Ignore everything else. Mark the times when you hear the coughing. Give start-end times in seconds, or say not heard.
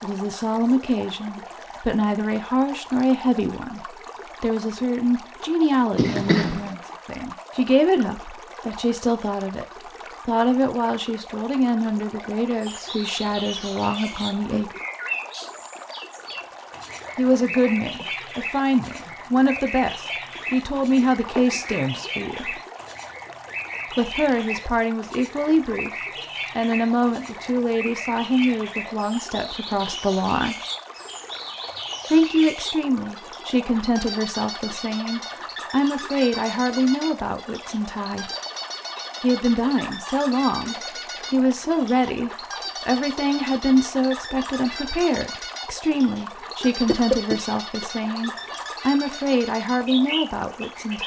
6.0-6.7, 21.4-21.9, 46.9-47.9.